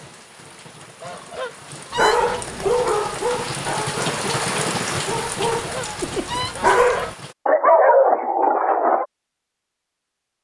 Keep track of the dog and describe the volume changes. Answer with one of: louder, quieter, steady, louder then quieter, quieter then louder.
quieter then louder.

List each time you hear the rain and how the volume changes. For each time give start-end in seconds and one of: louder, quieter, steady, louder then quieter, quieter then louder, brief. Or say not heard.
0.0-7.3 louder then quieter.